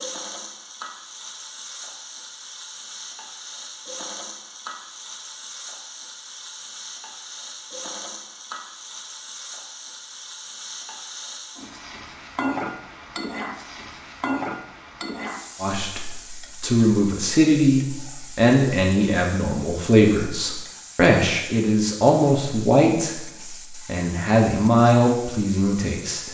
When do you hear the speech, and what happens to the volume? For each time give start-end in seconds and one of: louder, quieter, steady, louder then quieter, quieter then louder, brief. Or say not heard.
15.6-26.2 steady.